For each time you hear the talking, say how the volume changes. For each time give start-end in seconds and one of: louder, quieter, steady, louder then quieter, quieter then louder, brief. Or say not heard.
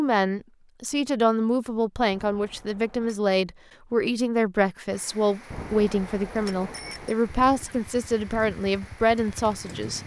0.0-10.0 steady.